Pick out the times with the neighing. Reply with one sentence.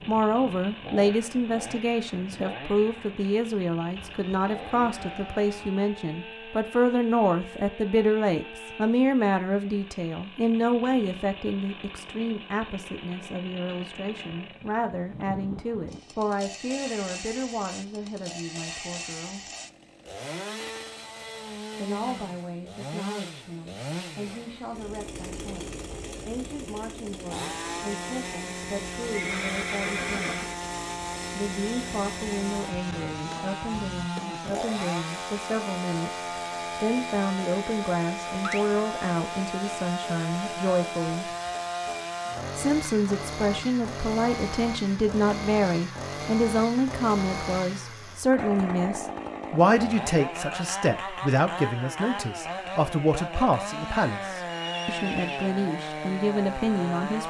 The neighing can be heard from 4.0 to 5.7 s, from 29.1 to 30.6 s and from 54.5 to 55.5 s.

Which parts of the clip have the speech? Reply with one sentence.
You can hear the speech from 0.1 to 19.4 s, from 21.8 to 30.4 s, from 31.3 to 41.3 s and from 42.5 to 57.2 s.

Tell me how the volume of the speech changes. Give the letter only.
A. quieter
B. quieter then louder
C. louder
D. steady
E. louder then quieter
B.